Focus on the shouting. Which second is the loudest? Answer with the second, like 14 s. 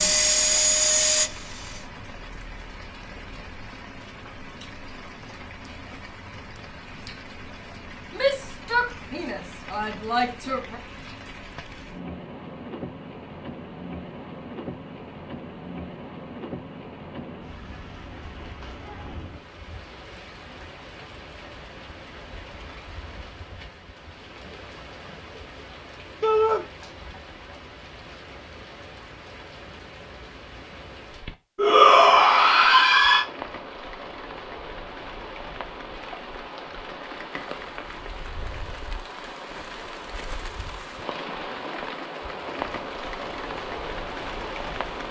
32 s.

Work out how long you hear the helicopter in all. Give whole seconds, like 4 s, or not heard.
2 s.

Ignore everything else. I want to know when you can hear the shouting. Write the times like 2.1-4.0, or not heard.
8.1-10.8, 26.2-26.6, 31.6-33.2.